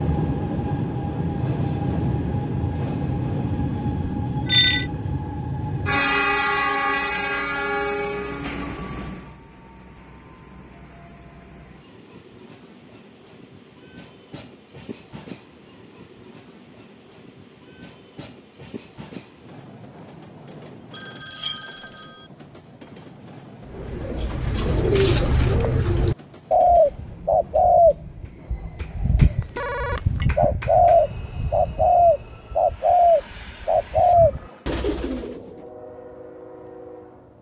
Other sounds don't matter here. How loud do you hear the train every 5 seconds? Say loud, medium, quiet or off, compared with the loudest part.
loud, loud, quiet, quiet, quiet, quiet, quiet, quiet.